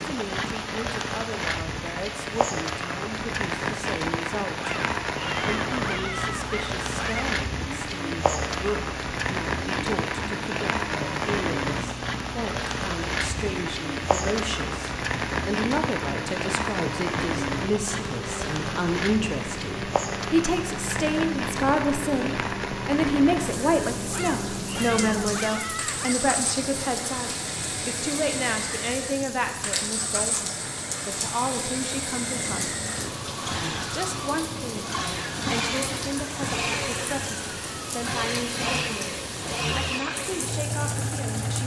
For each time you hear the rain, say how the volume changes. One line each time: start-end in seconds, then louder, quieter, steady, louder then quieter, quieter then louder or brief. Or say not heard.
0.0-41.6 quieter.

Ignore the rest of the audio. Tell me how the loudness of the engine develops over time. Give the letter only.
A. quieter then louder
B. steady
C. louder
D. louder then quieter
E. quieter
C.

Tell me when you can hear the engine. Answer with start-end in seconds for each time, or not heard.
5.9-41.6.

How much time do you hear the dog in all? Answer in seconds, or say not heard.
5 s.